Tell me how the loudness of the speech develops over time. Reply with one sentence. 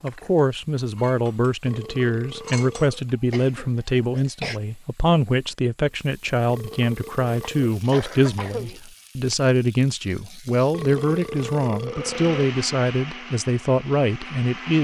The volume of the speech stays about the same.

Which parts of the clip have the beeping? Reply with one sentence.
You can't hear the beeping here.